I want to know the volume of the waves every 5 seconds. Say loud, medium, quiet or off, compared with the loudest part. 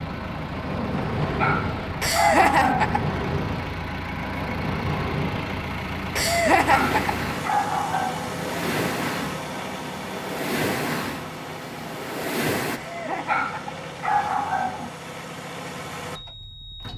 loud, loud, loud, off.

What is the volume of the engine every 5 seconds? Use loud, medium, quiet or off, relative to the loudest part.
loud, loud, medium, medium.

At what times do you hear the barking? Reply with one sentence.
You can hear the barking from 1.4 to 3.0 s, from 6.7 to 8.3 s and from 13.2 to 14.9 s.